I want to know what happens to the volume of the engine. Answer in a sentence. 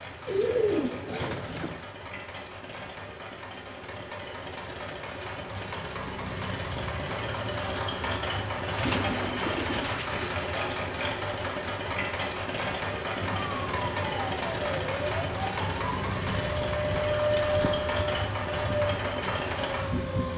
The loudness of the engine goes up.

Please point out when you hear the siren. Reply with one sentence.
You can hear the siren from 13.2 to 20.3 s.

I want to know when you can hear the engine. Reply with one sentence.
The engine can be heard from 0.0 to 20.3 s.